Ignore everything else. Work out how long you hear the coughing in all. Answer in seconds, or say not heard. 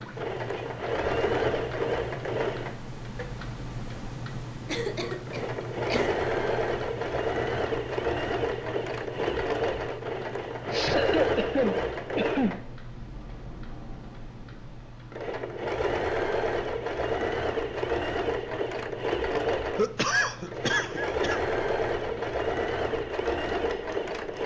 5 s.